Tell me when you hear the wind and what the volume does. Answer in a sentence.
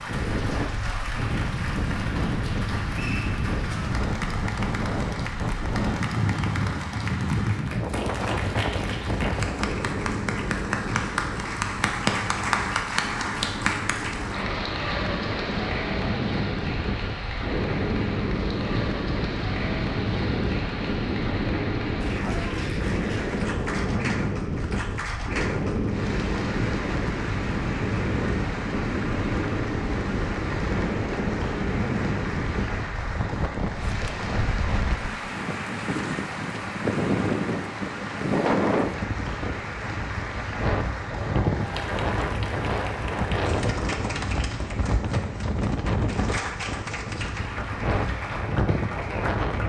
You can hear the wind from 0.0 to 49.6 s, at a steady volume.